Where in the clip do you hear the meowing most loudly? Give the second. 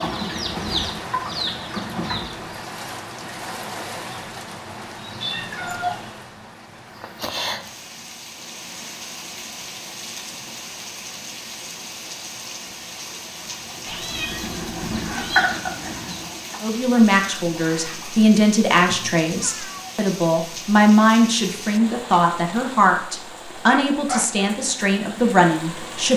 6 s.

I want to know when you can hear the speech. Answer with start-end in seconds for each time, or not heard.
16.6-26.1.